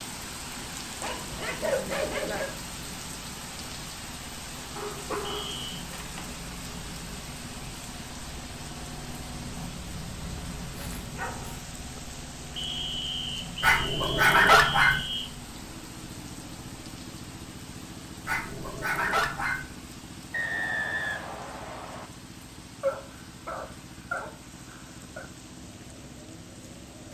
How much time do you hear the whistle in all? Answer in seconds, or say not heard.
5 s.